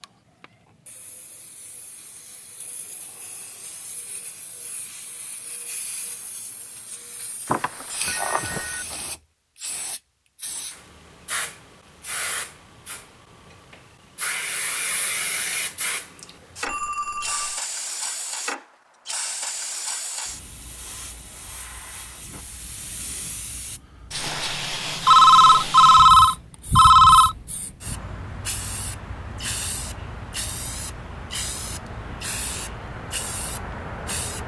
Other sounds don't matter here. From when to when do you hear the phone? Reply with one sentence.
The phone can be heard from 7.5 to 8.8 s, from 16.6 to 17.6 s and from 25.1 to 27.4 s.